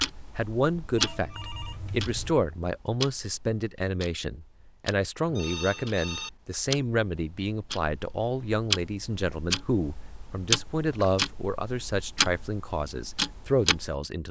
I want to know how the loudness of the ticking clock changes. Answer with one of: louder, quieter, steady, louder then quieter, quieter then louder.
quieter then louder.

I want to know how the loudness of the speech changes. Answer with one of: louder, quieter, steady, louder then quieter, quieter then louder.
steady.